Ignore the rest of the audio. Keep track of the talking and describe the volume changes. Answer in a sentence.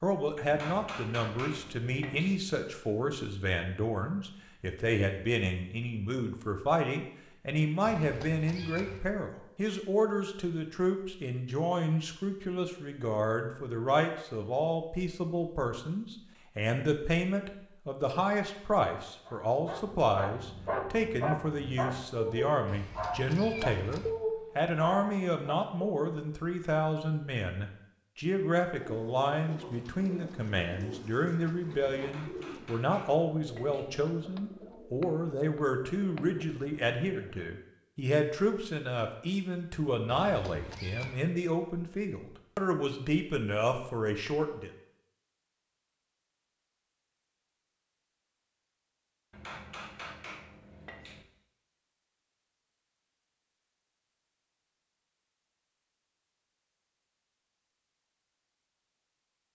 The loudness of the talking stays about the same.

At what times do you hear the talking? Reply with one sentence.
You can hear the talking from 0.0 to 44.7 s.